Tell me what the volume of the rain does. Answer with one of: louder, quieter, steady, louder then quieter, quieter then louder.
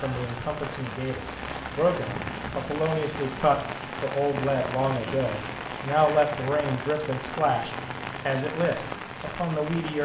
steady.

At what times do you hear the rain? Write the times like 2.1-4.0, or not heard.
0.0-9.9.